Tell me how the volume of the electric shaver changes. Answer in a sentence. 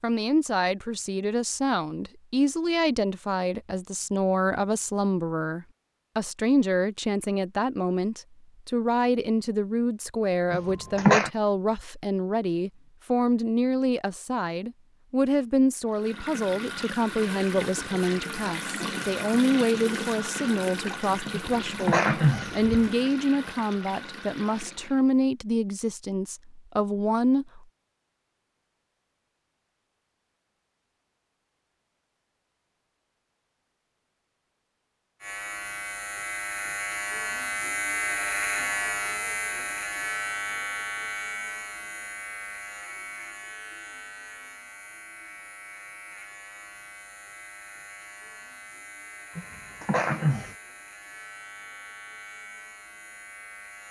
The volume of the electric shaver goes down.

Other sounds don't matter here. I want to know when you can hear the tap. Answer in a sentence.
You can hear the tap from 15.8 to 25.1 s.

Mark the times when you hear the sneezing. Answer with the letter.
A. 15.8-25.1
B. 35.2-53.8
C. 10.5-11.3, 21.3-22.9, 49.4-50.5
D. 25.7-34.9
C.